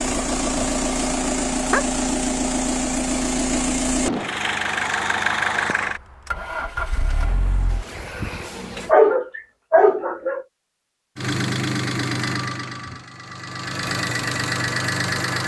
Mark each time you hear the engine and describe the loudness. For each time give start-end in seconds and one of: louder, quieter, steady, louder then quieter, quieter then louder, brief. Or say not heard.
0.0-8.9 quieter
11.2-15.4 quieter then louder.